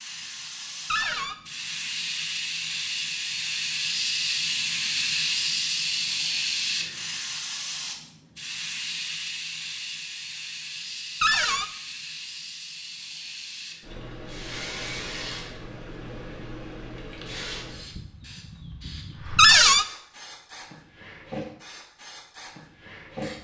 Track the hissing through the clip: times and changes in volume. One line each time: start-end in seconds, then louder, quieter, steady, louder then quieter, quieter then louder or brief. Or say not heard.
0.0-23.3 quieter.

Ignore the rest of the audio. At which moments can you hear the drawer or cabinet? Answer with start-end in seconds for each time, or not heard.
0.9-1.4, 11.2-11.7, 19.4-19.9.